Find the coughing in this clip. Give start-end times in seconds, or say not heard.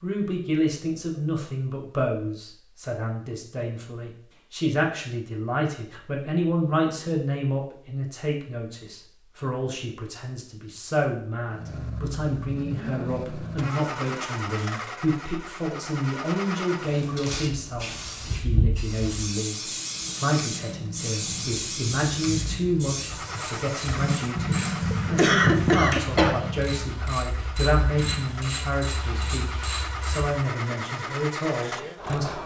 24.6-26.6.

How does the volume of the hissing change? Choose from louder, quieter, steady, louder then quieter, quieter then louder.
quieter.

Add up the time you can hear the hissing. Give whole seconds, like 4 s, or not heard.
9 s.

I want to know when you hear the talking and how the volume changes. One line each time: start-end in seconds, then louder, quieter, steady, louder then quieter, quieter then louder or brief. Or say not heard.
0.0-32.4 steady.